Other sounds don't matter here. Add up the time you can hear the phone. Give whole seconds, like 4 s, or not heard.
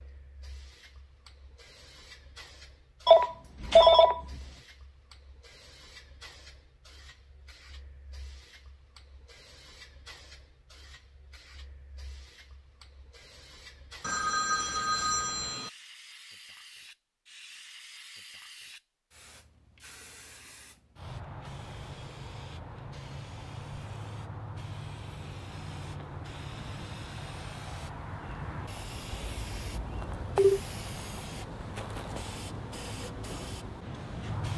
4 s.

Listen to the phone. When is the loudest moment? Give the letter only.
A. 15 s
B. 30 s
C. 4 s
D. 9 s
C.